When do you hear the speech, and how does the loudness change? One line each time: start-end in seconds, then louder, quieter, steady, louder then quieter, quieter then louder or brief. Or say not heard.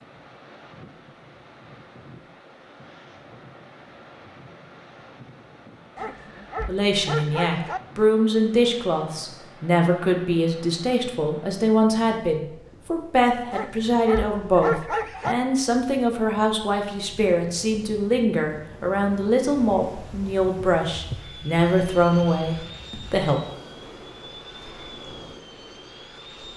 6.7-23.4 steady.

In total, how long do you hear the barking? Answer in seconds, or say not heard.
4 s.